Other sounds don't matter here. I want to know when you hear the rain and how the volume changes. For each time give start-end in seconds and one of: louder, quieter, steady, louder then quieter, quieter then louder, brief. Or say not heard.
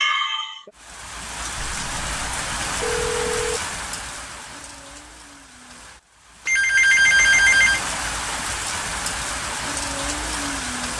0.0-10.9 quieter then louder.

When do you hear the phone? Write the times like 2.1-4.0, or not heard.
1.6-3.6, 6.5-7.8.